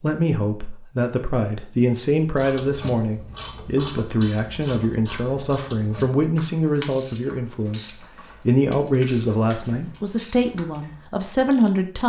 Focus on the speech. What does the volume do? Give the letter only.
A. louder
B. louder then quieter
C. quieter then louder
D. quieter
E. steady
E.